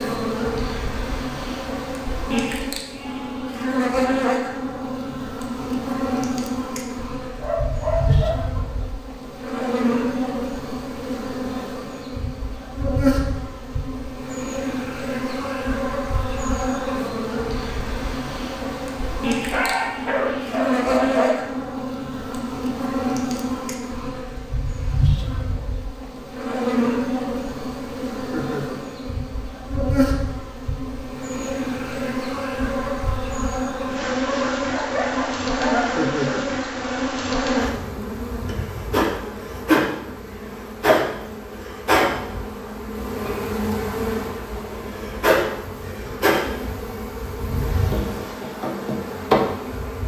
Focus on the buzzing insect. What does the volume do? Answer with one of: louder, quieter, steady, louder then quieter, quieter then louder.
steady.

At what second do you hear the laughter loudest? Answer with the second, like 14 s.
36 s.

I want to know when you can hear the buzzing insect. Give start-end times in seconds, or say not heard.
0.0-50.0.